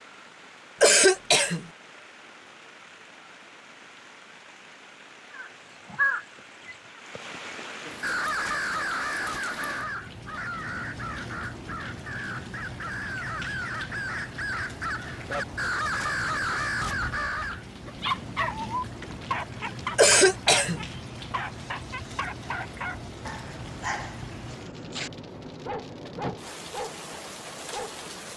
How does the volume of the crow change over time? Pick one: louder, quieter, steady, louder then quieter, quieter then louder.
quieter then louder.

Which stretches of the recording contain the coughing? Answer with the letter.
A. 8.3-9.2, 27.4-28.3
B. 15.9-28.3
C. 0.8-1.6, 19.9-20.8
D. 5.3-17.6
C.